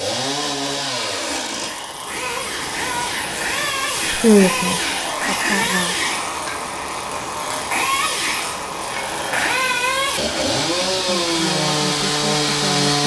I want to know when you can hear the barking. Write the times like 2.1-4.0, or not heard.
not heard.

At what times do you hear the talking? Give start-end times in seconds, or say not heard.
4.0-6.0, 10.8-12.9.